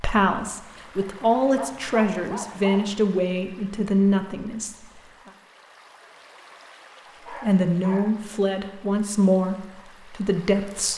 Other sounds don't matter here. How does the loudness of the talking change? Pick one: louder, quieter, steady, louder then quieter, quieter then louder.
steady.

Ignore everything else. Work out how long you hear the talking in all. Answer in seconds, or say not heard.
9 s.